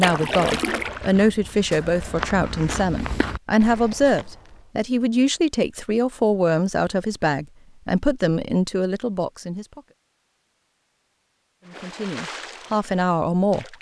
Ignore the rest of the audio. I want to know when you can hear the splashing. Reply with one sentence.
The splashing can be heard from 0.0 to 1.9 s and from 11.7 to 13.7 s.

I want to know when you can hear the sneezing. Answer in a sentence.
The sneezing can't be heard in this clip.